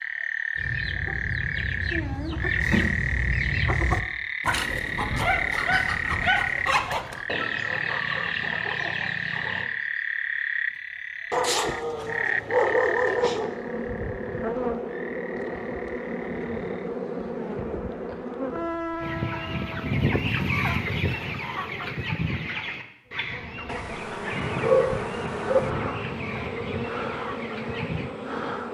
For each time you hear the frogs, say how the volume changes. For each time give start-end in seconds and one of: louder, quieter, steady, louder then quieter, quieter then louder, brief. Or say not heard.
0.0-16.9 quieter.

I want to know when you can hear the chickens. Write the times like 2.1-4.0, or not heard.
0.6-9.7, 19.0-28.1.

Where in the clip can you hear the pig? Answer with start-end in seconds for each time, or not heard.
not heard.